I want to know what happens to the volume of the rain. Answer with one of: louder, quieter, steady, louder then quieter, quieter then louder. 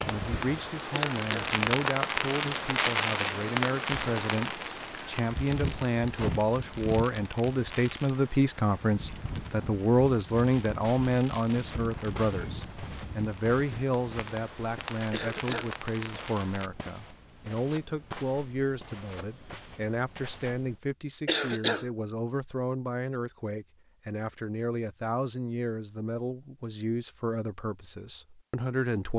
quieter.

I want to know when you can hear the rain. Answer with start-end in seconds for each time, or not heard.
0.0-16.7.